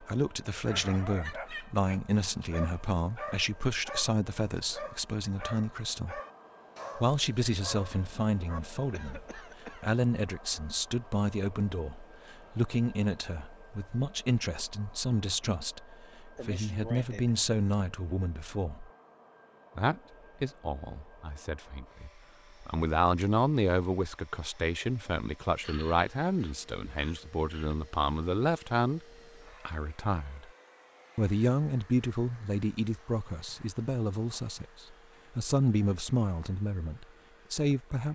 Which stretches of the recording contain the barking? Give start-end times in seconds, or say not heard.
0.6-8.6.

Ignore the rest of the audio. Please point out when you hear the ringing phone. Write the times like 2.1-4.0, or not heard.
not heard.